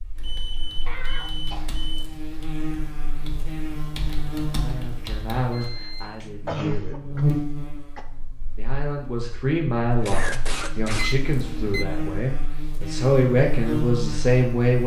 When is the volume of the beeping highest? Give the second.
11 s.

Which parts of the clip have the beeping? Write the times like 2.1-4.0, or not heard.
0.1-2.0, 5.5-6.3, 10.8-11.8.